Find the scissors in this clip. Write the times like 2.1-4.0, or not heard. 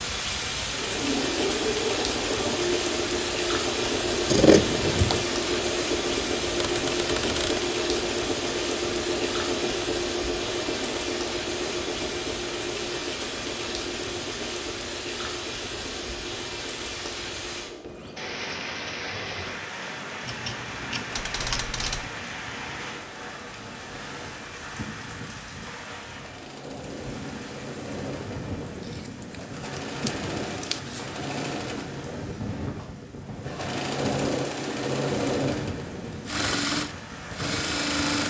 4.2-5.2, 20.2-21.9, 29.3-31.1.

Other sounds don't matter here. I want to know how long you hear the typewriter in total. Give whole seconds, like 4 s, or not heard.
2 s.